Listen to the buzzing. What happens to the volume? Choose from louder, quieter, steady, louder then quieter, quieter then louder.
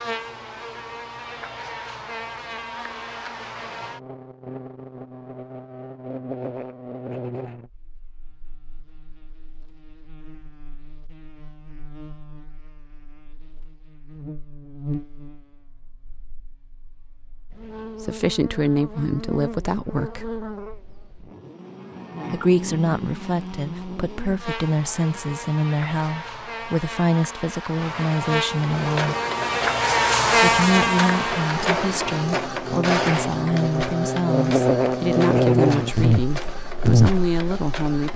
quieter then louder.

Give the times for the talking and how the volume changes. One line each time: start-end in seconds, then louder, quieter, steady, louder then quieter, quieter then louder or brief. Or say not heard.
18.0-20.3 brief
22.3-29.1 steady
30.4-38.1 steady.